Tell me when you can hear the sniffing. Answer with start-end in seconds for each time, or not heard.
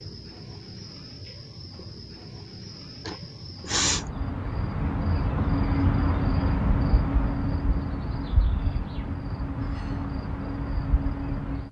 3.0-4.1.